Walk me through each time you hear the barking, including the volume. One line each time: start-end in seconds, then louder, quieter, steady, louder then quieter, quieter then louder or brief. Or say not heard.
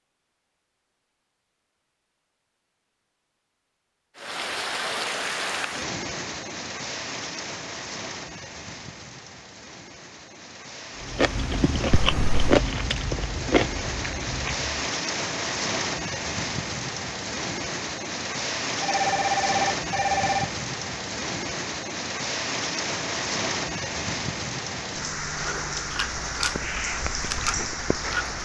not heard.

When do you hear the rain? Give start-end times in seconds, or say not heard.
4.2-28.3.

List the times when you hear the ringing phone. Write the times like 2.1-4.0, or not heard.
11.9-12.3, 18.8-20.5.